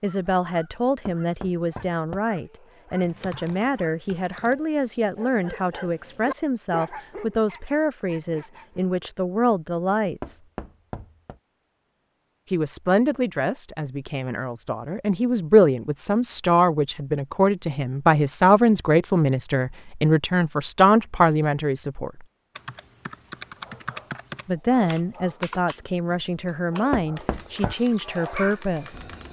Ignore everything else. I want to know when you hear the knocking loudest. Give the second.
27 s.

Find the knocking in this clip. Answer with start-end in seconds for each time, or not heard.
1.1-2.2, 10.2-11.4, 26.9-27.8.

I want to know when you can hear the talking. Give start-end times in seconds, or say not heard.
0.0-10.4, 12.4-22.2, 24.4-29.1.